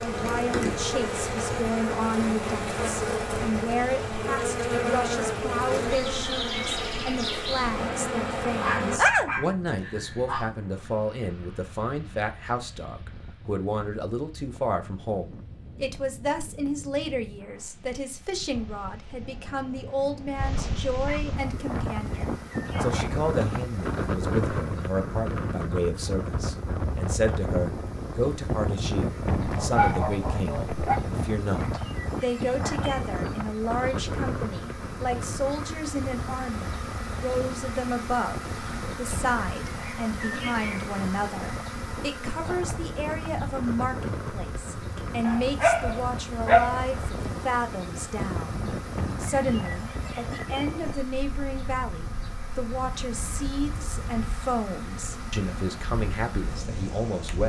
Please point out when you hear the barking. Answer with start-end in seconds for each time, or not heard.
8.6-10.5, 19.2-21.2, 29.3-31.0, 45.2-46.8.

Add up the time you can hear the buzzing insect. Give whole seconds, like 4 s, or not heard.
45 s.